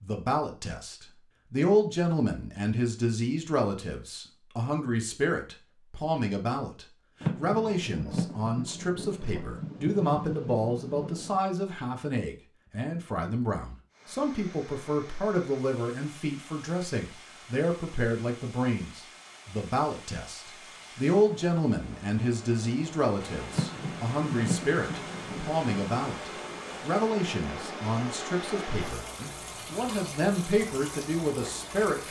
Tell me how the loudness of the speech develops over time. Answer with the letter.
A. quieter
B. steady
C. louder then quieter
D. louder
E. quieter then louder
B.